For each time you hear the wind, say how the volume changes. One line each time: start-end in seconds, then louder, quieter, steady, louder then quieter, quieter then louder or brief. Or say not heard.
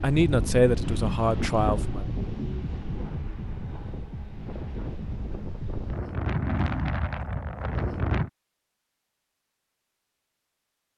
0.0-8.3 quieter then louder.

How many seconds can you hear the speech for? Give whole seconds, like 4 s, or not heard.
2 s.